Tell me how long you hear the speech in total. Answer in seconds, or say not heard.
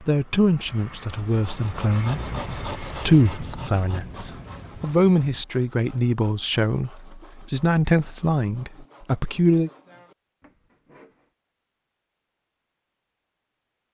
10 s.